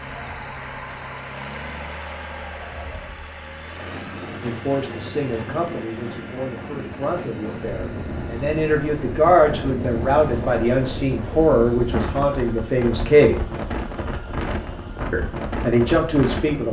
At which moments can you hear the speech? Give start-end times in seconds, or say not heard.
4.4-13.3, 15.1-16.6.